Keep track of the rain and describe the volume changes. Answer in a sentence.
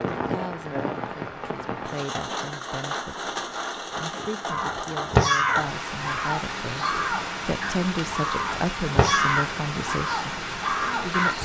The loudness of the rain stays about the same.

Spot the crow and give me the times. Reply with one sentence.
You can hear the crow from 4.5 to 11.3 s.